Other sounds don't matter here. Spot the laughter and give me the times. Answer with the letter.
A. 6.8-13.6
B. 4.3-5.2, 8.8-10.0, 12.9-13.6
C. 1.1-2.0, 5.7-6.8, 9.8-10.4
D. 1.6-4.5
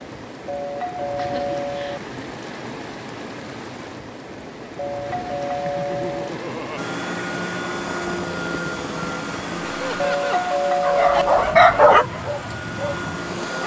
C.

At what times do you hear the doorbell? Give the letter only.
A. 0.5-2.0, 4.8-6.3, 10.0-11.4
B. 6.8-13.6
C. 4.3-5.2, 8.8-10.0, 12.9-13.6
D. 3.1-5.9
A.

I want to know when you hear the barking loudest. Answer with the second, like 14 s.
12 s.